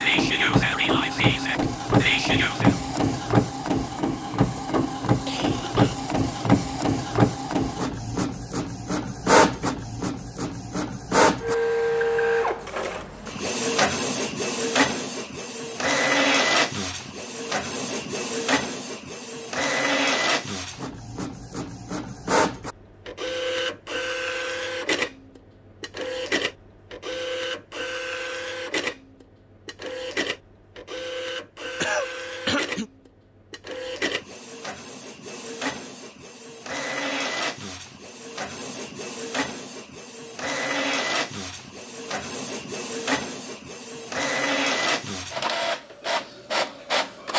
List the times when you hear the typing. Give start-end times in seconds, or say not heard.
not heard.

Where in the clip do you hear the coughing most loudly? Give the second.
32 s.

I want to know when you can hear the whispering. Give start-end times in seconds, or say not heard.
0.0-2.8.